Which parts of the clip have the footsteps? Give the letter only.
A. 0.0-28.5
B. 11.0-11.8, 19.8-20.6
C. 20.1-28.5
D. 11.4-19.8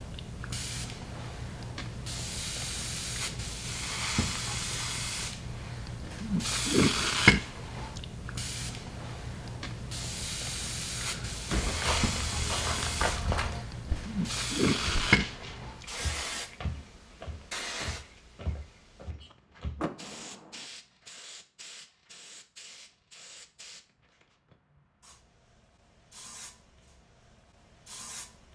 D.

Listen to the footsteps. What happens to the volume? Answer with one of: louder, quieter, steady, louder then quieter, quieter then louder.
quieter.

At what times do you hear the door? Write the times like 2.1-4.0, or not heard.
11.0-11.8, 19.8-20.6.